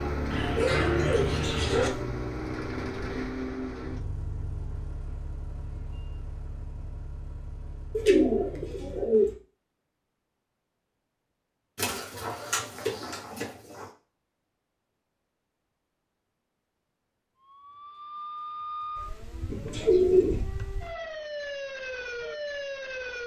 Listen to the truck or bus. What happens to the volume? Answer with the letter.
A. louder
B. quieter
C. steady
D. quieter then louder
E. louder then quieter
B.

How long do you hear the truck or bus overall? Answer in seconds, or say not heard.
9 s.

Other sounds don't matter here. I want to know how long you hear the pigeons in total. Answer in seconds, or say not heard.
6 s.